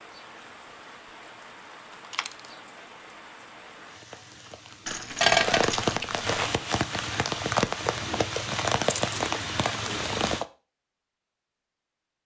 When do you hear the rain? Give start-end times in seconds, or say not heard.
0.0-10.4.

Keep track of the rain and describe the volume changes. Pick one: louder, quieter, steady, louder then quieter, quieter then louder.
louder.